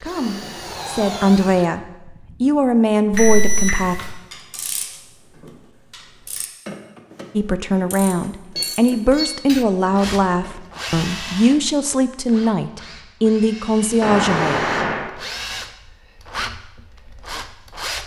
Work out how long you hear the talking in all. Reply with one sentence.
The talking can be heard for 11 seconds in total.